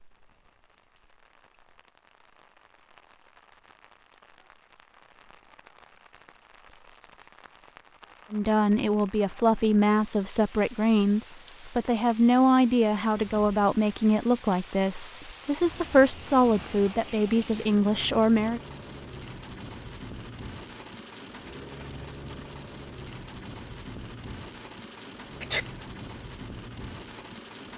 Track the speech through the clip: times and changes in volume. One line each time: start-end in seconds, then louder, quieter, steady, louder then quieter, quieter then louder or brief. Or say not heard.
8.3-18.6 steady.